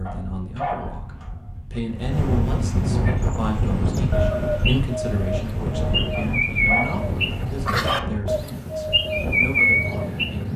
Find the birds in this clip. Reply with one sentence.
You can hear the birds from 3.0 to 10.3 s.